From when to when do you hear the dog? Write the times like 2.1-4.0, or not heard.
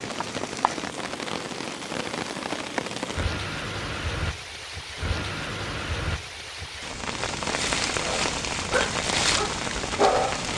8.0-10.4.